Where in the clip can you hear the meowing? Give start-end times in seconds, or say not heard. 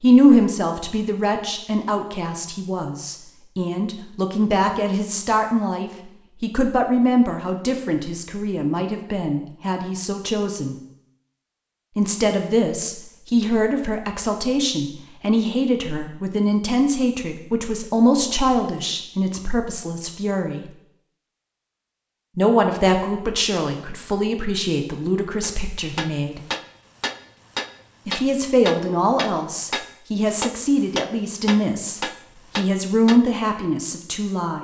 not heard.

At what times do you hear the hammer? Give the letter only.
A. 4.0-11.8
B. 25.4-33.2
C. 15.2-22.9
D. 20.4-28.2
B.